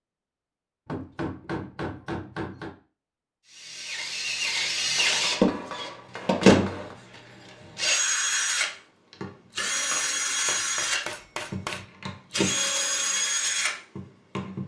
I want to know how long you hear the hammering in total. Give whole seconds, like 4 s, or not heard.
6 s.